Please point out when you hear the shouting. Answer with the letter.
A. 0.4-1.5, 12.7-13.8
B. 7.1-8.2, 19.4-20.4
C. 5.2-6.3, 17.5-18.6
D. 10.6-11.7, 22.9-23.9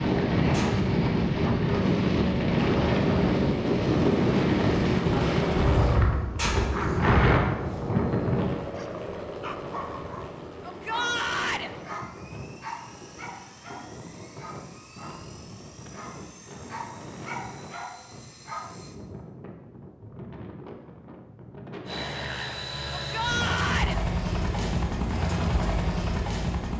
D.